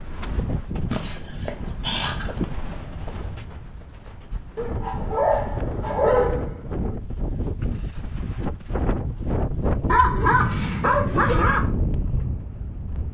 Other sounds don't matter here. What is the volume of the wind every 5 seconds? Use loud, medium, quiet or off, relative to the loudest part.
medium, loud, loud.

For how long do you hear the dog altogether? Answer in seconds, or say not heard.
6 s.